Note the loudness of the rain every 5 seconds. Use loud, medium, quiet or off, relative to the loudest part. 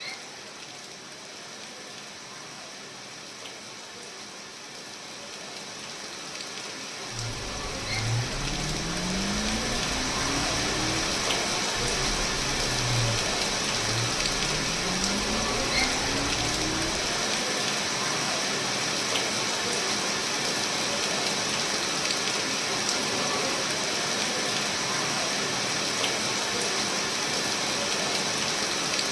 quiet, medium, loud, loud, loud, loud.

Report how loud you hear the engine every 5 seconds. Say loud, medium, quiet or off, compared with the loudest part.
off, loud, loud, loud, off, off.